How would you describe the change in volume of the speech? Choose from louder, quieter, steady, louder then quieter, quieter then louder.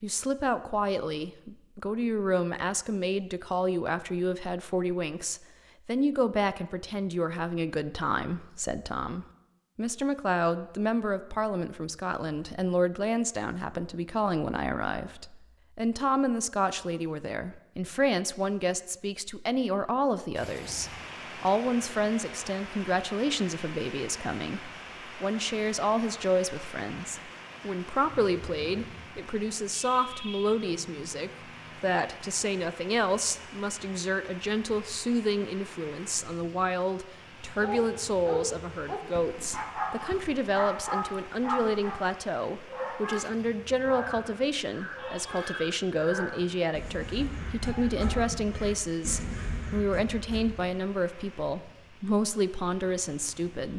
steady.